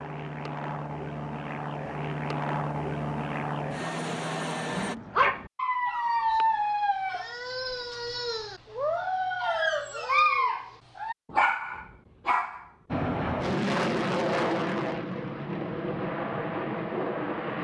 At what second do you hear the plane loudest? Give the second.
14 s.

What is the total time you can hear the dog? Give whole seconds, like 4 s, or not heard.
8 s.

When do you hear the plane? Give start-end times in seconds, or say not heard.
0.0-5.0, 12.8-17.5.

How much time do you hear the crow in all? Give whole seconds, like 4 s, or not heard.
not heard.